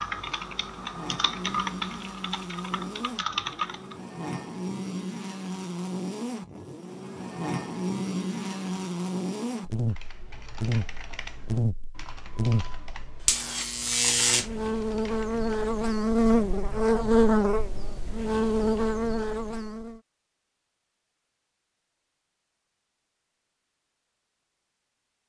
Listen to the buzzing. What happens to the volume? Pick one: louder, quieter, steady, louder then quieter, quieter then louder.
louder.